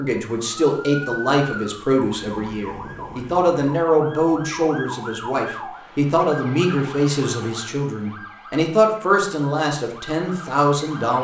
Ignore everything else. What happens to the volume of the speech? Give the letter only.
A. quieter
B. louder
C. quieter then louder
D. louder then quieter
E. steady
E.